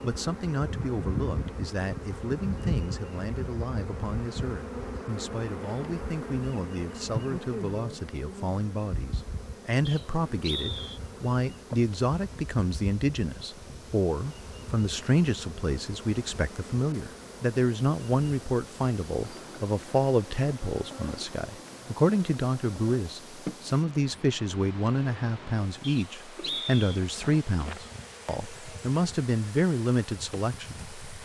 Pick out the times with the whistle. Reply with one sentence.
You can hear the whistle from 9.8 to 11.0 s and from 25.8 to 26.9 s.